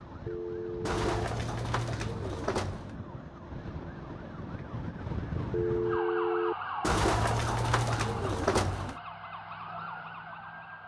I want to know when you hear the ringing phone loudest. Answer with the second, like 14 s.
6 s.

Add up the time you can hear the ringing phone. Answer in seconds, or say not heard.
2 s.